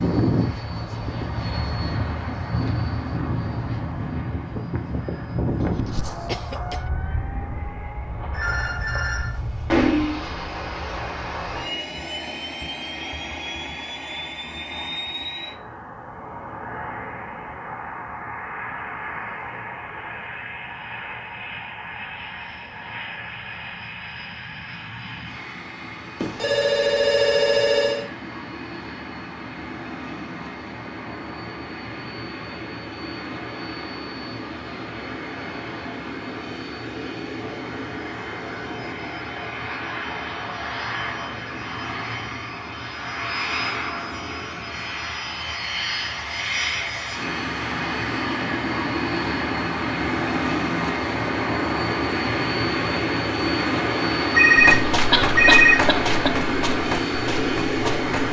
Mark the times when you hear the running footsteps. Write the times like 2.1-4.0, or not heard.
54.5-58.2.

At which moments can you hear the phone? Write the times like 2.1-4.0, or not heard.
8.3-10.2, 26.2-28.1, 54.3-55.9.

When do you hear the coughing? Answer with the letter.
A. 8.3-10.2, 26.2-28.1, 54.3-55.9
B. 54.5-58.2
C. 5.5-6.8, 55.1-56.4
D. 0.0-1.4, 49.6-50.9
C.